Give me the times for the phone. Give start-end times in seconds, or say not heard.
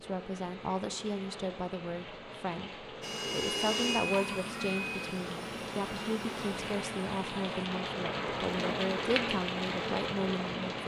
not heard.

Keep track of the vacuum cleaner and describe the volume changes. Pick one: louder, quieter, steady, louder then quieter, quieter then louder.
quieter.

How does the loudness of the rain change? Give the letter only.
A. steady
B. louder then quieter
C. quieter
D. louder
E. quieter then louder
D.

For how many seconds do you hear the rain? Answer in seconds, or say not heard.
11 s.